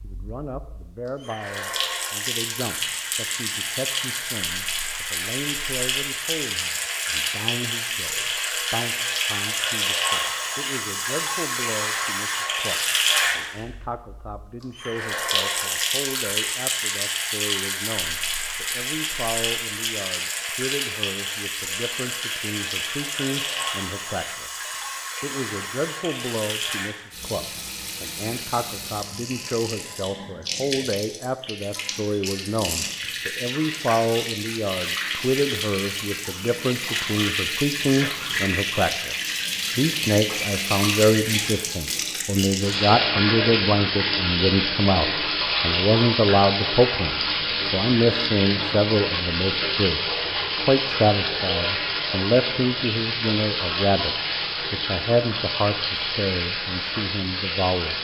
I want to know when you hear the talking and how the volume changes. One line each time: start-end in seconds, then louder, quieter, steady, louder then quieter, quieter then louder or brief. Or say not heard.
0.0-57.9 louder.